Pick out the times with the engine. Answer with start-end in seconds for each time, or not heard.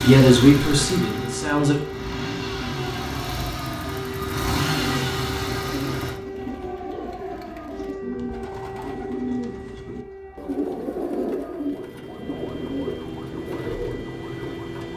0.0-6.2.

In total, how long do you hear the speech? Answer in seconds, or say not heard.
2 s.